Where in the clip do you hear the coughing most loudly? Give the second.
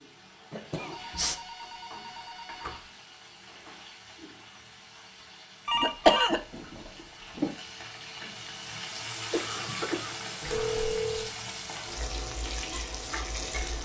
6 s.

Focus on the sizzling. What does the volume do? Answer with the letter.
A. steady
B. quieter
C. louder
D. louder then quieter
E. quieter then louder
C.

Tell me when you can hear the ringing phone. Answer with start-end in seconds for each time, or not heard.
0.9-2.9, 5.7-7.5, 10.4-11.3.